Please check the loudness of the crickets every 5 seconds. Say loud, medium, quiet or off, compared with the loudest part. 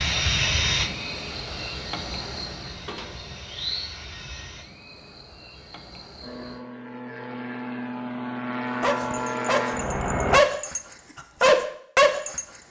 loud, medium, off.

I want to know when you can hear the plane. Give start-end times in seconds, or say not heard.
0.0-4.7, 6.2-10.4.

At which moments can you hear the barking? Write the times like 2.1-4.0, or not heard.
8.8-12.4.